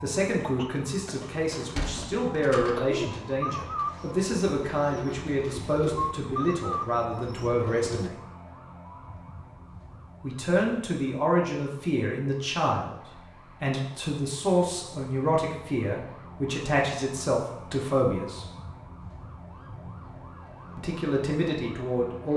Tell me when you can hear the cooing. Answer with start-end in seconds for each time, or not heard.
2.8-8.1.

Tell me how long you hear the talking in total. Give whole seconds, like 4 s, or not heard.
18 s.